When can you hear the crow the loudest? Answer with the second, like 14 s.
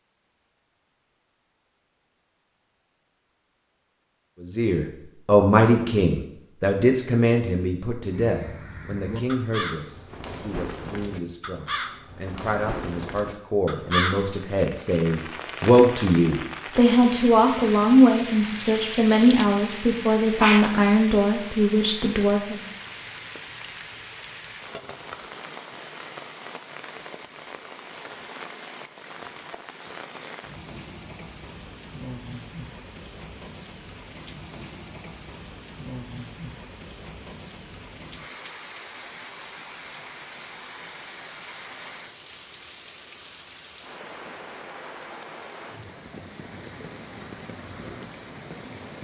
14 s.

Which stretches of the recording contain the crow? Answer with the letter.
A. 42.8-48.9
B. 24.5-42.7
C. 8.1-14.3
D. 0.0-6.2
C.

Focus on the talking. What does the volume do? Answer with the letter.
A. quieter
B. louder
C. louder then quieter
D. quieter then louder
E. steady
D.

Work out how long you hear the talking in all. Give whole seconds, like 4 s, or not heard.
18 s.